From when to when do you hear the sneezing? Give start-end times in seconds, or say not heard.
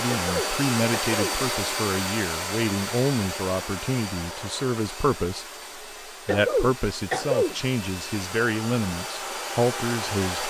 0.1-1.4, 6.2-7.5.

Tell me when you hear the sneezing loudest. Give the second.
7 s.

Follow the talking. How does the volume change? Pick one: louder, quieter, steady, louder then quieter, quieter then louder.
steady.